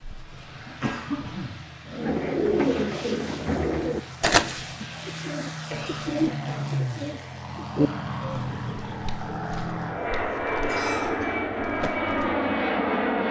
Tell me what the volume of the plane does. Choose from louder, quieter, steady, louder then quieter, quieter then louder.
louder.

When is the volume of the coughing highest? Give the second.
1 s.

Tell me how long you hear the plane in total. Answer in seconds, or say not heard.
13 s.